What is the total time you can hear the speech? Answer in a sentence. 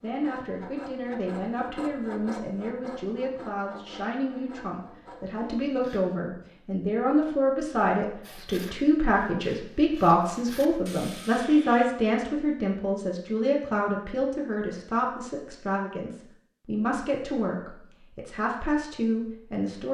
You can hear the speech for 20 seconds altogether.